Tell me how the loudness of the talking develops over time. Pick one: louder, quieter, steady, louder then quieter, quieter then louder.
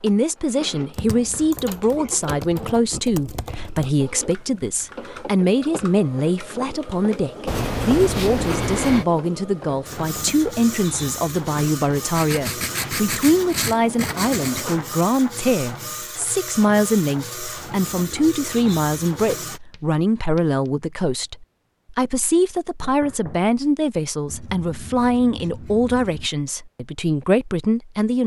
steady.